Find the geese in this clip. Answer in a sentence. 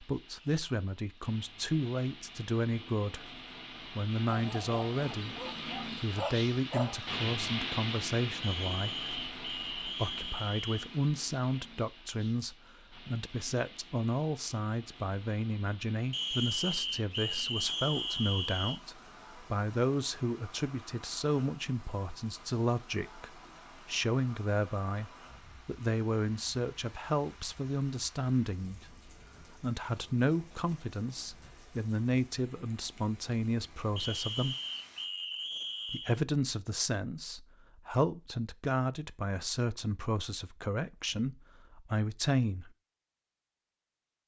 The geese can't be heard in this clip.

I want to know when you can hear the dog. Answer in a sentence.
The dog can be heard from 4.2 to 7.1 s.